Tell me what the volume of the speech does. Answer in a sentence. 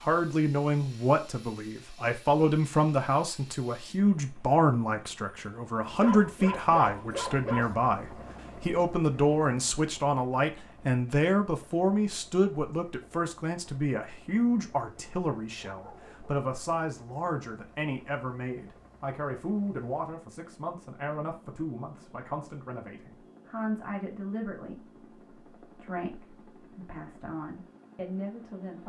The loudness of the speech goes down.